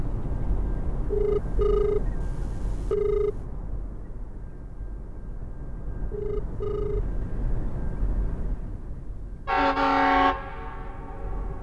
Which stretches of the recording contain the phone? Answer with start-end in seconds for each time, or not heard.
1.1-3.4, 6.1-7.0.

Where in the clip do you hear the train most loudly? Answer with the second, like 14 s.
10 s.